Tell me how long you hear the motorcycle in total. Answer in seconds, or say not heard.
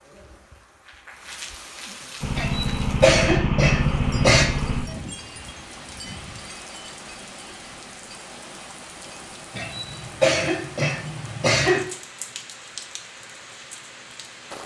3 s.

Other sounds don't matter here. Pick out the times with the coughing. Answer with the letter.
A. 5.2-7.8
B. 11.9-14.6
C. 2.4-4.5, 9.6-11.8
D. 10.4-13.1
C.